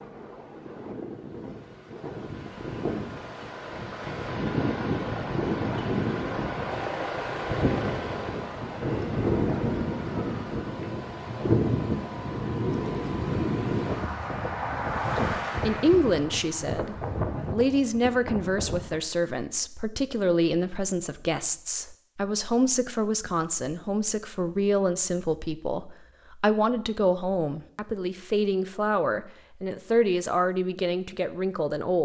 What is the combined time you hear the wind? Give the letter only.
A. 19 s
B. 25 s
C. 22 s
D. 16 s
A.